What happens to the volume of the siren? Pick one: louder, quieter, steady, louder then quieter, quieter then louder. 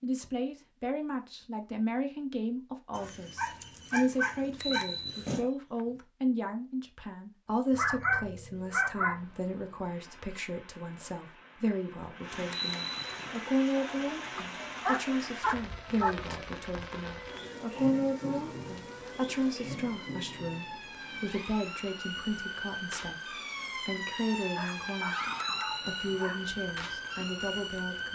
louder.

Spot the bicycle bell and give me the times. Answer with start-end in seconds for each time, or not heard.
4.4-6.0, 12.3-13.3, 25.2-26.2.